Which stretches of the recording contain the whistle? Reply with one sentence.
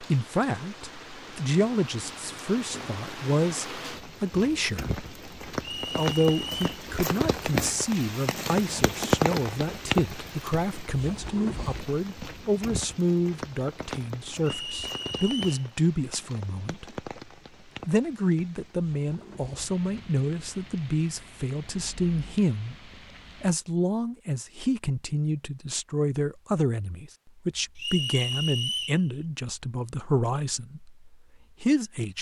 You can hear the whistle from 5.6 to 6.6 s, from 14.4 to 15.7 s and from 27.8 to 29.0 s.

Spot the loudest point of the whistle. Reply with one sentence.
The volume of the whistle peaks at 29 seconds.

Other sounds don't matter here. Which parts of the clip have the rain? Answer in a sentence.
The rain can be heard from 0.0 to 23.6 s.